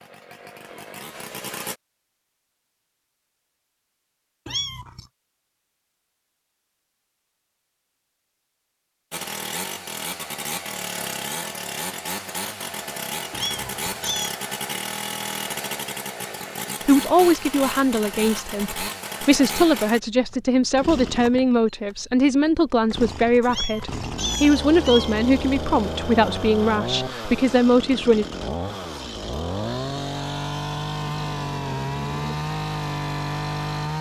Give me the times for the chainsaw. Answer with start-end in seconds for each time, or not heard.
0.0-1.8, 9.1-33.9.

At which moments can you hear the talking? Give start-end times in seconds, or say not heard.
16.9-28.2.